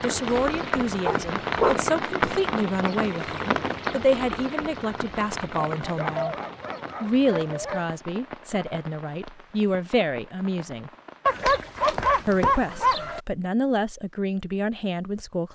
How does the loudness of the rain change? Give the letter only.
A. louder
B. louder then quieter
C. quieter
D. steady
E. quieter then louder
C.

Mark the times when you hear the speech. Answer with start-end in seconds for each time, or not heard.
0.0-6.3, 7.0-10.9, 12.2-15.5.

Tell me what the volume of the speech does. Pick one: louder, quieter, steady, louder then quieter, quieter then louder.
steady.